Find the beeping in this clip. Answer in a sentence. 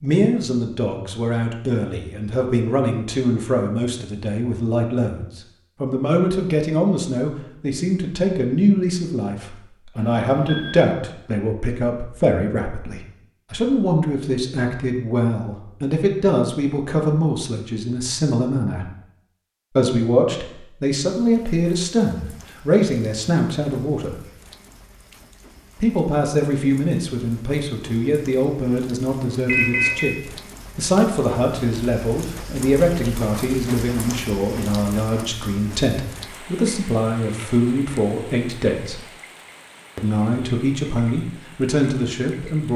The beeping can be heard from 9.9 to 10.8 s and from 29.4 to 30.1 s.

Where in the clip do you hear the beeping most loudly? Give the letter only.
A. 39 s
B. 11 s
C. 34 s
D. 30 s
D.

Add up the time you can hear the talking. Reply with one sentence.
The talking can be heard for 39 seconds in total.